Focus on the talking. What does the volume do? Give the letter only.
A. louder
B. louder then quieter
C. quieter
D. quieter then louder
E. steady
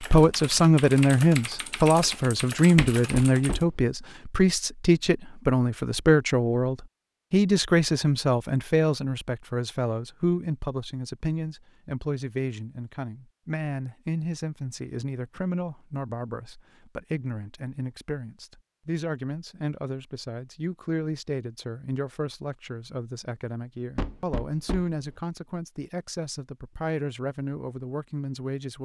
C.